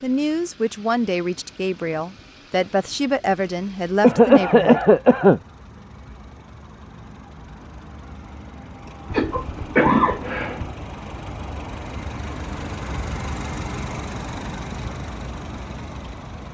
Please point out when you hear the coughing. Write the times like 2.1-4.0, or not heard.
4.0-5.4, 9.1-10.7.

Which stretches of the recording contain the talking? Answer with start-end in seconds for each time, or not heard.
0.0-4.8.